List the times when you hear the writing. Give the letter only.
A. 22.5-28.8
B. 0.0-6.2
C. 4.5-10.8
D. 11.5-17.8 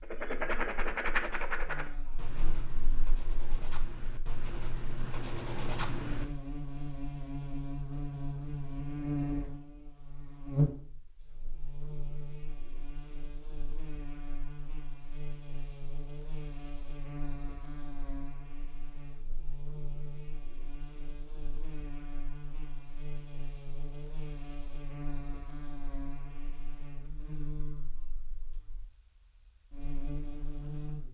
B.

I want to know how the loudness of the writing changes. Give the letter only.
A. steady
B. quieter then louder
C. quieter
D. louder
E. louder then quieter
B.